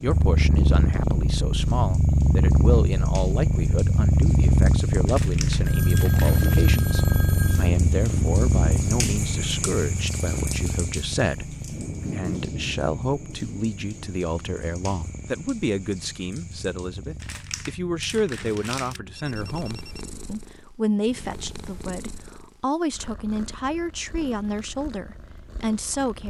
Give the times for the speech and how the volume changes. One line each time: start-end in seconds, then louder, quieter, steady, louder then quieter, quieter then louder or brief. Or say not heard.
0.0-26.2 steady.